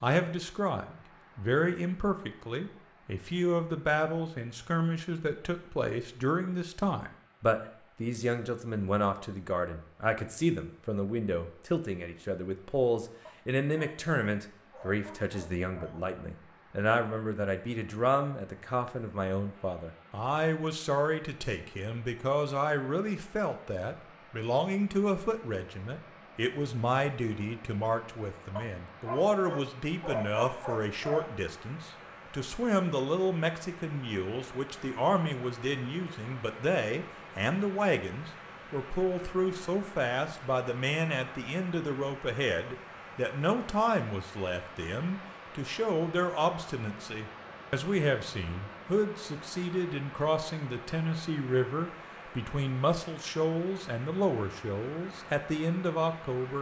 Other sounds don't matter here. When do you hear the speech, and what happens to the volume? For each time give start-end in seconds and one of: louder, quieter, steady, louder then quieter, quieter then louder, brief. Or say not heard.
0.0-56.5 steady.